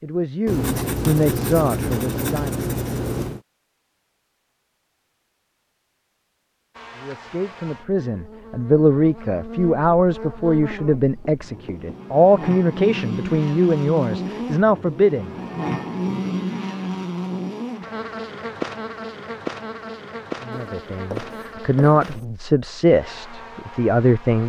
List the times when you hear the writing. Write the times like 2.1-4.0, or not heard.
0.5-3.4, 10.7-12.0, 20.5-22.2.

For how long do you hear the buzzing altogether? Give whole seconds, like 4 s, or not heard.
18 s.